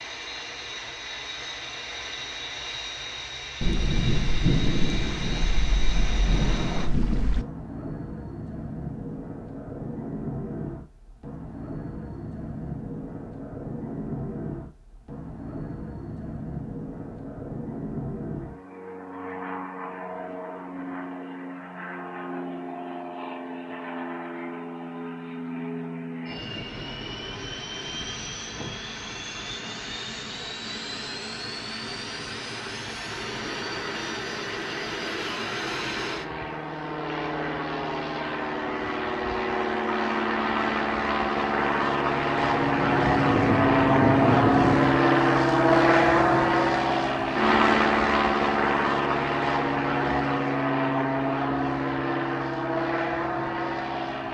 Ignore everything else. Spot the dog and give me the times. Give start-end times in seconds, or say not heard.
not heard.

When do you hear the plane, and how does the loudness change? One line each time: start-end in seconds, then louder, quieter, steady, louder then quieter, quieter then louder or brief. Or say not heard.
0.0-54.2 louder.